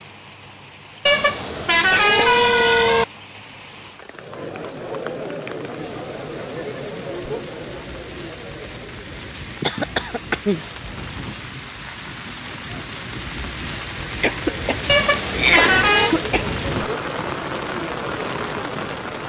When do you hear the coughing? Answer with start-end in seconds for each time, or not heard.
1.9-2.7, 9.6-10.6, 14.2-16.9.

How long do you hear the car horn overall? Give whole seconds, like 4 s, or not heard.
3 s.